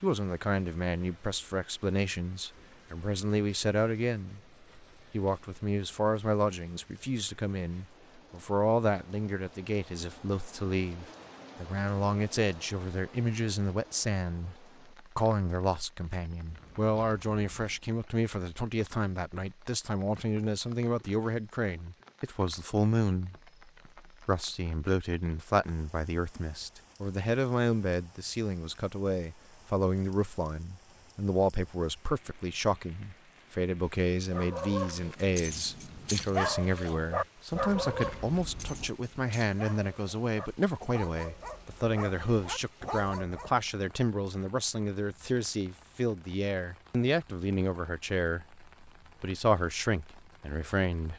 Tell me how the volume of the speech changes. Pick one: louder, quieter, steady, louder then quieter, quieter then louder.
steady.